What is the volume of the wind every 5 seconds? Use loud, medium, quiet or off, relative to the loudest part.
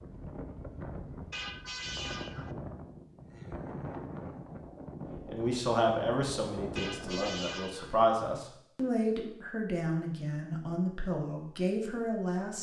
loud, loud, off.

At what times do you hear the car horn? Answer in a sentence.
The car horn can be heard from 1.3 to 2.5 s and from 6.8 to 8.0 s.